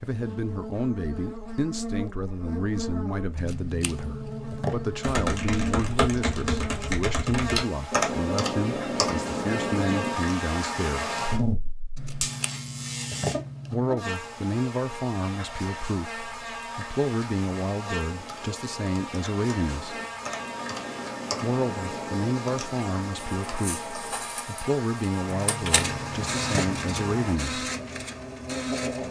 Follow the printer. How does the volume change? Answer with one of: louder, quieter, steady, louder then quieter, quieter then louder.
louder then quieter.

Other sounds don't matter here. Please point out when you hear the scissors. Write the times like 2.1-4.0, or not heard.
3.4-5.0, 11.9-13.9, 25.2-27.1.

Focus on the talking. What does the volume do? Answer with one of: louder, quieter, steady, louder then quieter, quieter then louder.
steady.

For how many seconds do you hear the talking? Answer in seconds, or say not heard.
24 s.